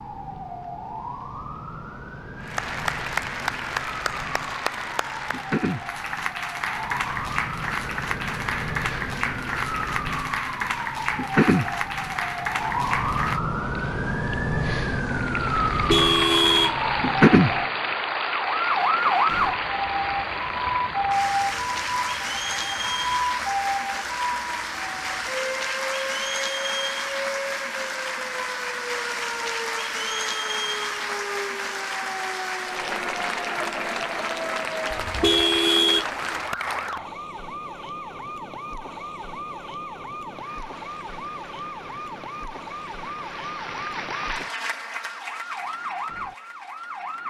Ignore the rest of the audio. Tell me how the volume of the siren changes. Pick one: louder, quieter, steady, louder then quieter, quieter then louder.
louder then quieter.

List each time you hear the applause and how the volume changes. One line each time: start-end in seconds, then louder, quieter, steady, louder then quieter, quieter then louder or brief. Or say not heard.
2.4-37.0 steady
40.2-47.2 louder then quieter.